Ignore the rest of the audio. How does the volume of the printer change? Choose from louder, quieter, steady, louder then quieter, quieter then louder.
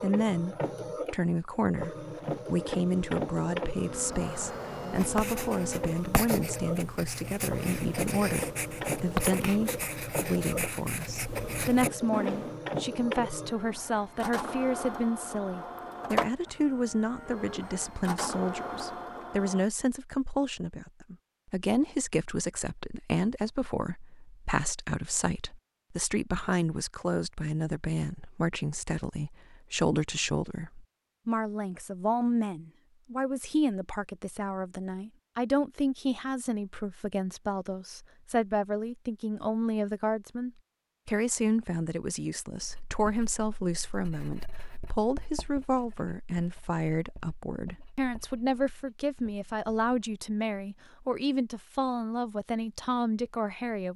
steady.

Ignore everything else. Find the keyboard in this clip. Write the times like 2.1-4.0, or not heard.
not heard.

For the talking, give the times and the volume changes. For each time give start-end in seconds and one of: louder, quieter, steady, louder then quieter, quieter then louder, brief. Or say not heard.
0.0-53.9 steady.